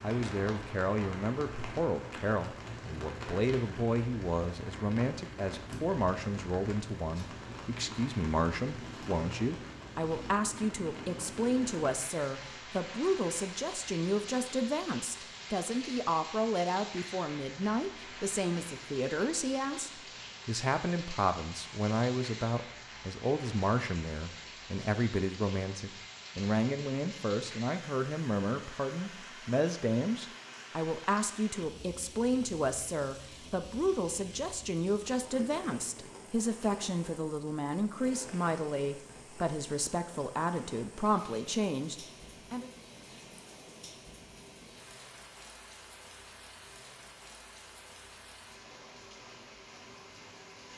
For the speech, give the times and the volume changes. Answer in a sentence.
The speech can be heard from 0.0 to 42.7 s, at a steady volume.